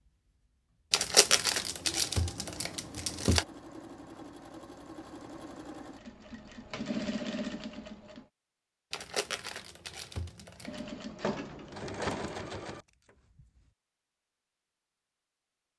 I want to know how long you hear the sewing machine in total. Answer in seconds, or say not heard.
11 s.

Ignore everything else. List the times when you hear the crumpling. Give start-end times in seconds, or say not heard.
0.9-3.5, 8.9-10.8.